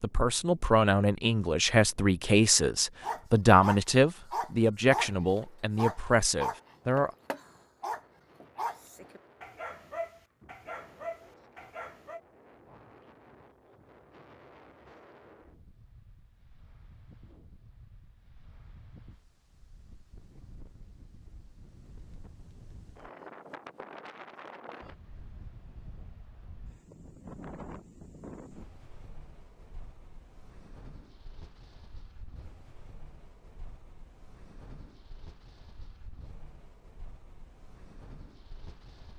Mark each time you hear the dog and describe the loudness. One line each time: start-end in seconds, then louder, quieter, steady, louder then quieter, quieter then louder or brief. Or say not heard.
3.0-5.1 brief
5.8-12.2 quieter.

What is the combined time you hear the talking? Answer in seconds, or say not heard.
7 s.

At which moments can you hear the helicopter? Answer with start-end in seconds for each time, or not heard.
not heard.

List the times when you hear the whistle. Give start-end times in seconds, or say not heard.
not heard.